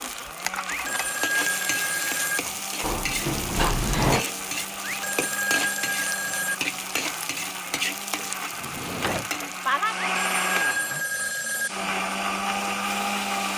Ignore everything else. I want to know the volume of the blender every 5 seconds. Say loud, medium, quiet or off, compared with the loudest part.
medium, medium, loud.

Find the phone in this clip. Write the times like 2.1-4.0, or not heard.
0.7-2.4, 4.8-6.5, 9.9-11.7.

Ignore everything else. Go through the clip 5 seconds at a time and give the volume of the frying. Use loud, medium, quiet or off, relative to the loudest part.
loud, loud, medium.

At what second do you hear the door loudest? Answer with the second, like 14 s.
4 s.